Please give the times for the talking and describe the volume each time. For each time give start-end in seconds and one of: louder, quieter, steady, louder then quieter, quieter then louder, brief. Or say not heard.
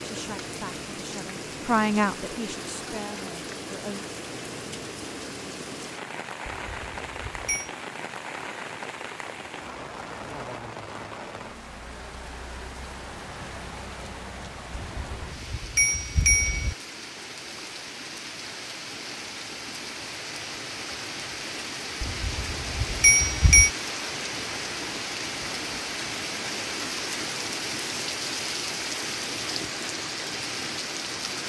0.0-4.0 louder then quieter.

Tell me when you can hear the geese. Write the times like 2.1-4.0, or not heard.
not heard.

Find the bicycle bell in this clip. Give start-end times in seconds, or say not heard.
6.5-7.7, 14.7-16.8, 22.0-23.7.